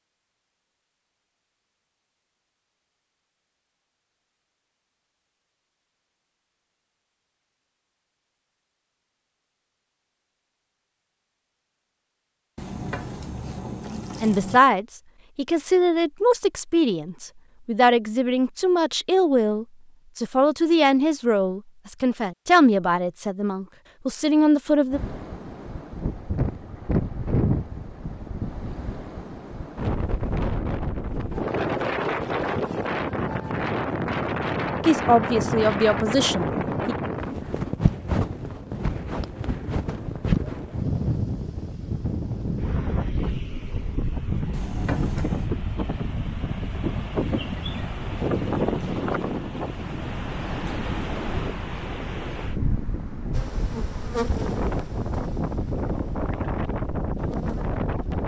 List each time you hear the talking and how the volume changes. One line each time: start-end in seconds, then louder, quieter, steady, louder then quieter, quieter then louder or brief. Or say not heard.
14.2-25.0 steady
34.8-37.0 brief.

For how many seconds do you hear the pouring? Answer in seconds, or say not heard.
3 s.